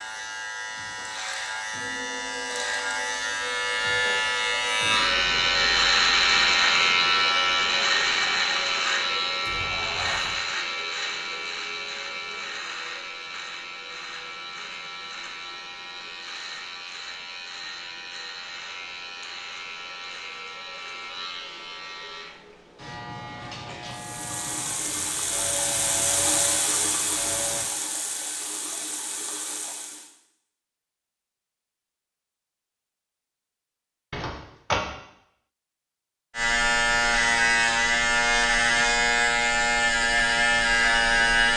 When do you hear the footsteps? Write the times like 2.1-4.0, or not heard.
not heard.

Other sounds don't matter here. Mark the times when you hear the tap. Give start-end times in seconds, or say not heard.
23.9-30.1.